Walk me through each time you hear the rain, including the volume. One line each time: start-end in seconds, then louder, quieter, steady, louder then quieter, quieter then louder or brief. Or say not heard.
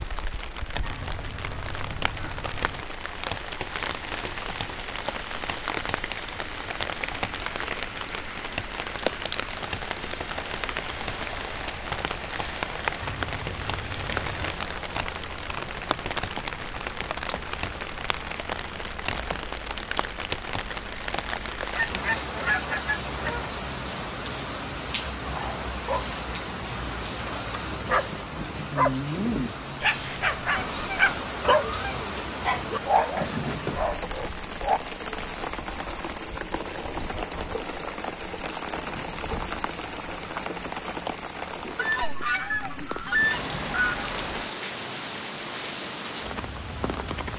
0.0-47.3 steady.